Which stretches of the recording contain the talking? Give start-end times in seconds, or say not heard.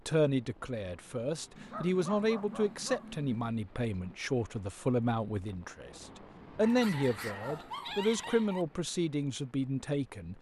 0.1-10.3.